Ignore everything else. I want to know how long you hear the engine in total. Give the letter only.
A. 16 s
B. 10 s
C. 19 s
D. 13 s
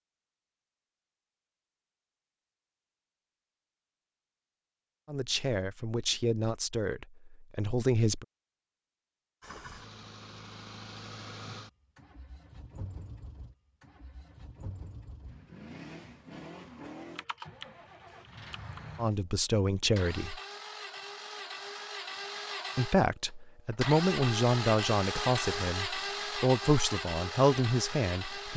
C.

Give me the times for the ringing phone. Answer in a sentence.
The ringing phone can't be heard in this clip.